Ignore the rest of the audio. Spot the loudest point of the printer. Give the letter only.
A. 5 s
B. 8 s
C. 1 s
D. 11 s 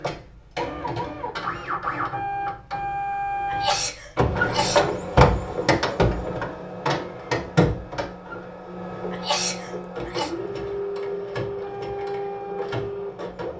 A.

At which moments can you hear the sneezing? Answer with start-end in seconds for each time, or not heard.
3.5-4.8, 9.1-10.3.